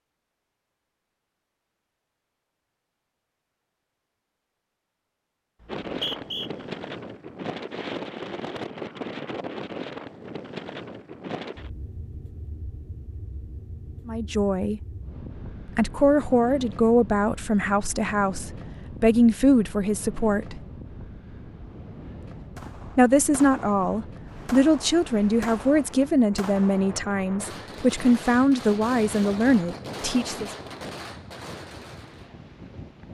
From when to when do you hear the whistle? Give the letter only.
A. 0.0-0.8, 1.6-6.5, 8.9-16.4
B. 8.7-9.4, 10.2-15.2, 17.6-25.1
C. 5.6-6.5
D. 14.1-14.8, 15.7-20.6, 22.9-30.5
C.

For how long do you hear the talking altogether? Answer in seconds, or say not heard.
13 s.